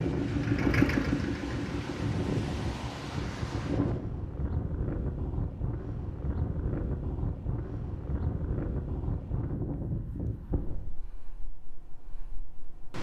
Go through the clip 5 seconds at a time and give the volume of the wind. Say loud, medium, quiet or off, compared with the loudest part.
loud, loud, medium.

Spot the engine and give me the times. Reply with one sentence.
The engine can be heard from 0.0 to 2.1 s.